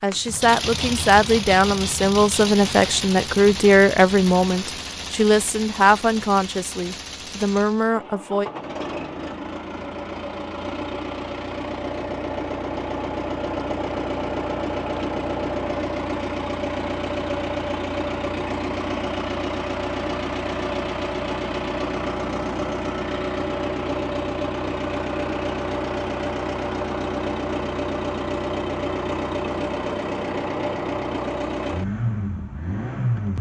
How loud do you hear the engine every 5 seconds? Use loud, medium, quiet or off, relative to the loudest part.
loud, medium, loud, loud, loud, loud, loud.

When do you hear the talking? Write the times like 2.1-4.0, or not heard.
0.0-8.5.